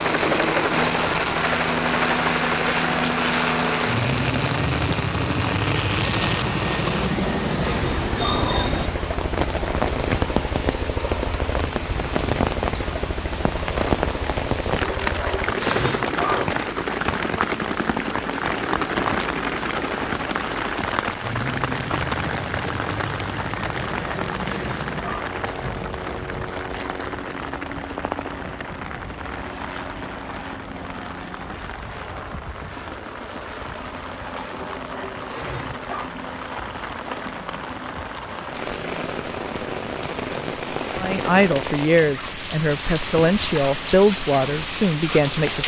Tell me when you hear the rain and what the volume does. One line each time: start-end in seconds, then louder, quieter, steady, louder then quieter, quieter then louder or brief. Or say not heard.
0.0-45.6 quieter then louder.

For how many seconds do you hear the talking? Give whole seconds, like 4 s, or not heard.
5 s.